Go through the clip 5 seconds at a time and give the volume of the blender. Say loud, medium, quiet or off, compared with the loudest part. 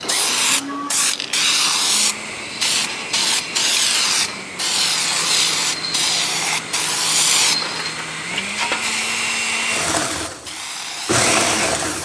medium, medium, loud.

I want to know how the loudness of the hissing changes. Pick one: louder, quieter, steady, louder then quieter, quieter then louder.
quieter.